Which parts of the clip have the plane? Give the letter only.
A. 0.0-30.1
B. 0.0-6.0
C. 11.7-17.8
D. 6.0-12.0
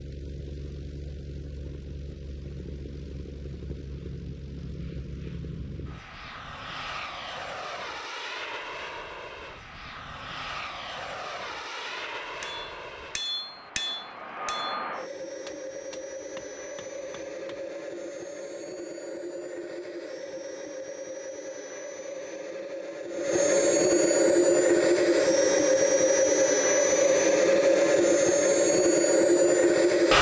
A.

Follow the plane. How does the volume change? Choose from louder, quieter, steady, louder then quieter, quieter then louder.
louder.